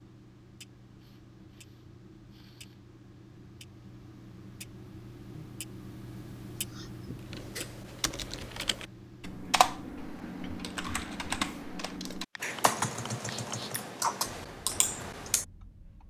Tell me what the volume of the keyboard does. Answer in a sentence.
The loudness of the keyboard goes up.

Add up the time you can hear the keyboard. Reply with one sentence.
You can hear the keyboard for 8 seconds altogether.